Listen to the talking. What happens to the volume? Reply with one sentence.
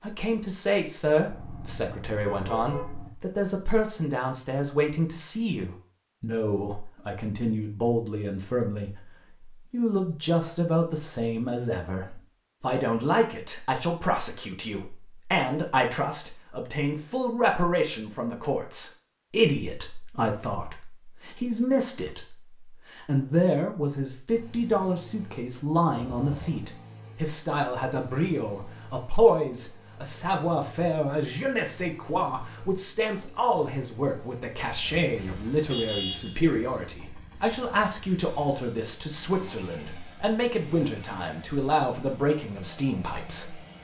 The volume of the talking stays about the same.